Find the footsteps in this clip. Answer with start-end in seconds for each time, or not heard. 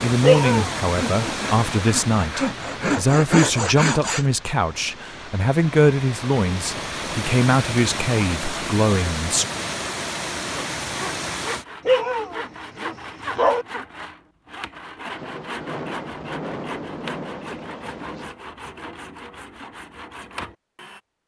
not heard.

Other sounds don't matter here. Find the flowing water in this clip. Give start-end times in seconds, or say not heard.
0.0-11.7.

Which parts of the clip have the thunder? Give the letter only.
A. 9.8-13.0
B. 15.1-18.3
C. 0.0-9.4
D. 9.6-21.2
B.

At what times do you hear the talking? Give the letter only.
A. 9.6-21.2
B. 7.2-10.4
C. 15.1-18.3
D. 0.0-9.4
D.